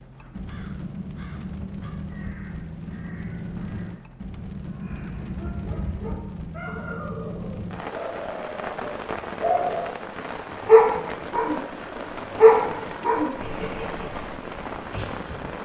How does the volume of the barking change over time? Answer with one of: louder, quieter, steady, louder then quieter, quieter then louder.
louder then quieter.